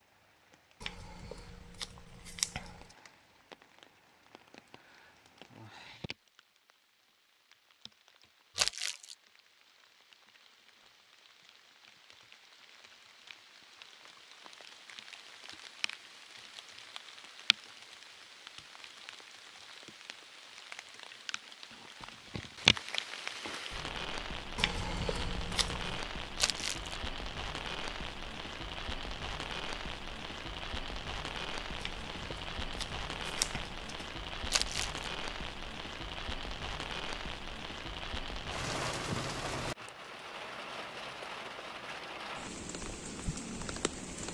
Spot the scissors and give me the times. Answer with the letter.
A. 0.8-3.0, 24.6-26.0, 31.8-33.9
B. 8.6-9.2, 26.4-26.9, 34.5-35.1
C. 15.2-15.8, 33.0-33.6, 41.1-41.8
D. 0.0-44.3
A.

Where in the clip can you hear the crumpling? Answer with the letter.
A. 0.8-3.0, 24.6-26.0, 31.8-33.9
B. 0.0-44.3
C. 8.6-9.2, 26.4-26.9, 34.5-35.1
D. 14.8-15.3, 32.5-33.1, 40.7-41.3
C.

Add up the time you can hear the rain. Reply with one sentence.
You can hear the rain for 44 seconds altogether.